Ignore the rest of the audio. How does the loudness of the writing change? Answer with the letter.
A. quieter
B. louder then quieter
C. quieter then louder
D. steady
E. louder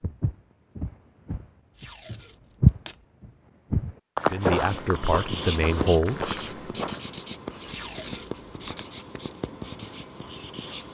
A.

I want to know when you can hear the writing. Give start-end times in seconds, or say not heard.
4.4-10.9.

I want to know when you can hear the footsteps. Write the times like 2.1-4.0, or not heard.
0.0-7.0.